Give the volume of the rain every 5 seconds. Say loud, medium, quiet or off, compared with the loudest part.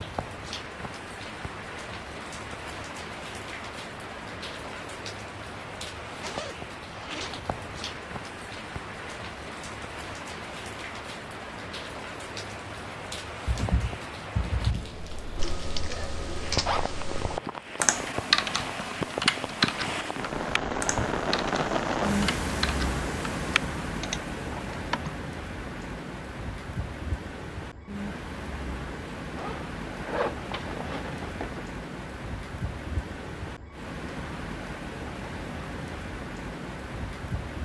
medium, medium, medium, medium, loud, medium, medium, medium.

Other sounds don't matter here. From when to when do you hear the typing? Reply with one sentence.
The typing can be heard from 13.4 to 25.1 s.